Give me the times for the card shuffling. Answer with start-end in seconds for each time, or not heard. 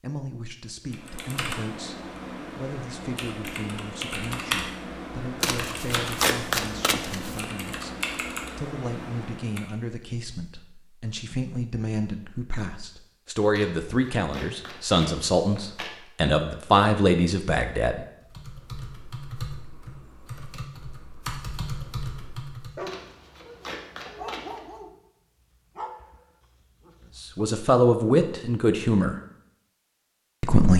5.4-7.5, 13.6-15.9, 22.9-24.7.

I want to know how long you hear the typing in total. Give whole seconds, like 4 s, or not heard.
13 s.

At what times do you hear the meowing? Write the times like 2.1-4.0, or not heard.
not heard.